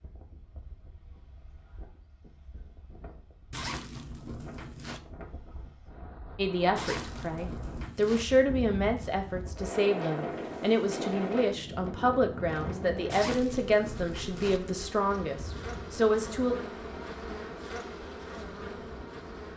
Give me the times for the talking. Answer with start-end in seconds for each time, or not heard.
6.3-16.6.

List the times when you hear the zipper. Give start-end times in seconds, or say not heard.
3.5-5.0, 6.8-8.2, 13.1-14.6.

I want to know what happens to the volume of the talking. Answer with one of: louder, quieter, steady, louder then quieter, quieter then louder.
steady.